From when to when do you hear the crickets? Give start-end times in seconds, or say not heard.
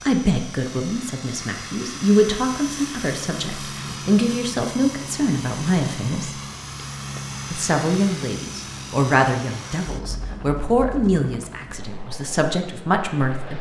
not heard.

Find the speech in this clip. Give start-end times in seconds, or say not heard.
0.0-6.4, 7.5-13.5.